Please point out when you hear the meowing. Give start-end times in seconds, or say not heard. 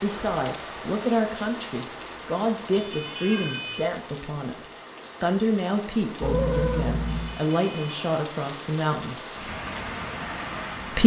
3.1-3.6, 6.2-7.4.